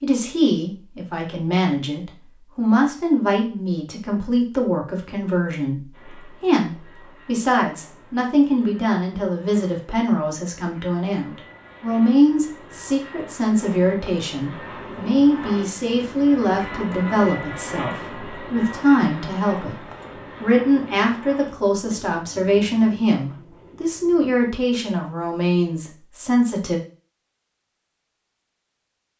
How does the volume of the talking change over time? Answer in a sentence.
The loudness of the talking stays about the same.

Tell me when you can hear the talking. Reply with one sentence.
The talking can be heard from 0.0 to 26.8 s.